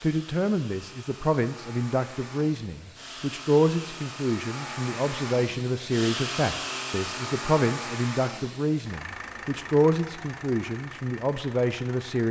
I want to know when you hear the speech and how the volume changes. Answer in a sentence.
You can hear the speech from 0.0 to 12.2 s, at a steady volume.